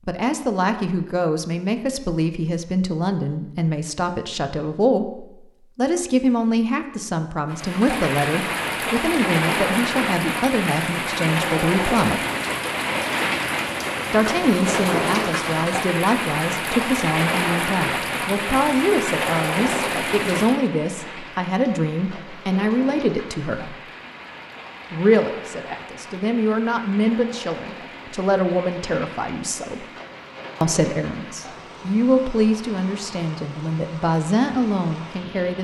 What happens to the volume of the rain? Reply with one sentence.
The volume of the rain goes down.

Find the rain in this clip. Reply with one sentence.
The rain can be heard from 7.5 to 35.5 s.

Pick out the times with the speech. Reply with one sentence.
The speech can be heard from 0.1 to 12.2 s, from 14.1 to 23.8 s, from 24.9 to 29.9 s and from 30.6 to 35.5 s.